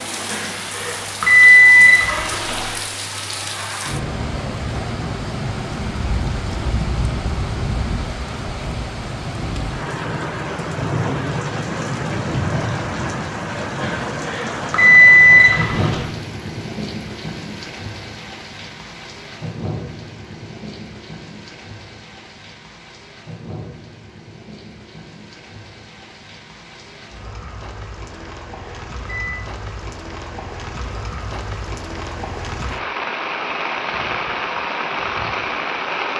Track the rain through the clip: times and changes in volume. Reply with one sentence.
The rain can be heard from 0.0 to 36.1 s, getting quieter then louder.